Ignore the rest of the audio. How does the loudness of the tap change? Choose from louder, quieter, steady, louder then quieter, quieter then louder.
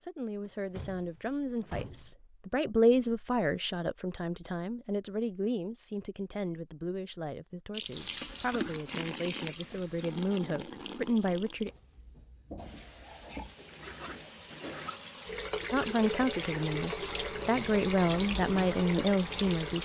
quieter then louder.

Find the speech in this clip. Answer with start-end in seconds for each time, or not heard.
0.0-11.7, 15.7-19.8.